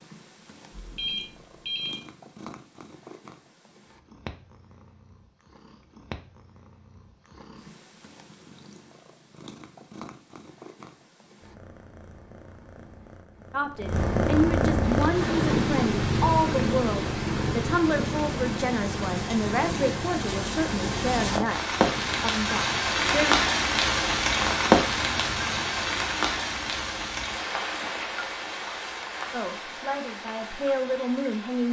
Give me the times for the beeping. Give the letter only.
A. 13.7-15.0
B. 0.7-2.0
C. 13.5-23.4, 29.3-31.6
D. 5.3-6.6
B.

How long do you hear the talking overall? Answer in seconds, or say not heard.
12 s.